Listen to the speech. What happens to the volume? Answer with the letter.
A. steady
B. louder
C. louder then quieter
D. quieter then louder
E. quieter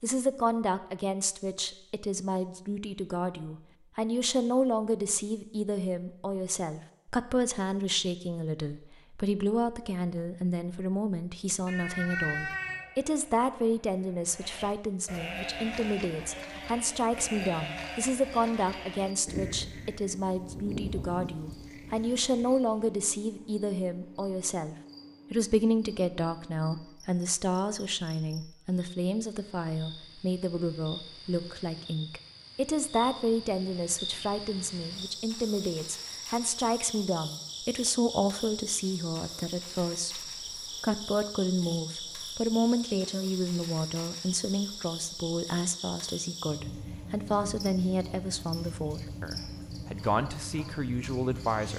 A.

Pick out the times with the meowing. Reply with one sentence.
The meowing can be heard from 11.7 to 12.8 s.